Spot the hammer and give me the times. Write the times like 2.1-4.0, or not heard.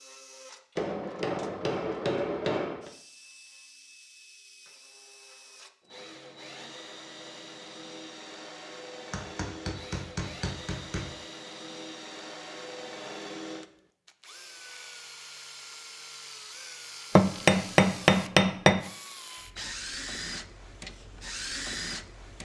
0.8-2.9, 9.1-11.1, 17.1-18.8.